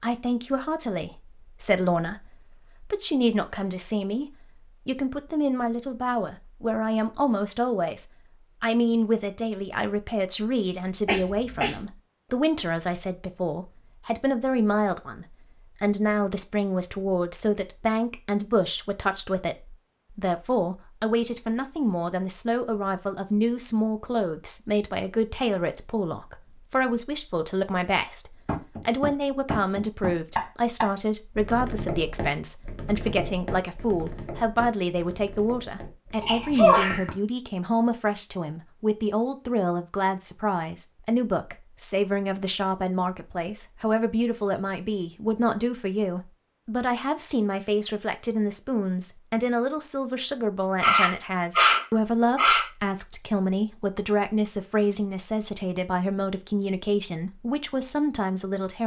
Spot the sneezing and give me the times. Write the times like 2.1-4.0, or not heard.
11.1-11.8, 36.2-37.0, 50.8-52.6.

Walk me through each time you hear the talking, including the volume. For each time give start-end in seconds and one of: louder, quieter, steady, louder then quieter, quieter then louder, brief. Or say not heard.
0.0-58.8 steady.